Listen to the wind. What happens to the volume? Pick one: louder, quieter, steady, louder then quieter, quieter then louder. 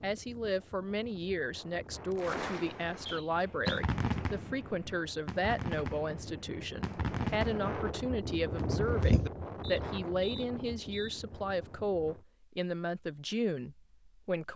louder then quieter.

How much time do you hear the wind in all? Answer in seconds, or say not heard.
12 s.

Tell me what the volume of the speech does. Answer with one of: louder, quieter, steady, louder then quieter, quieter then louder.
steady.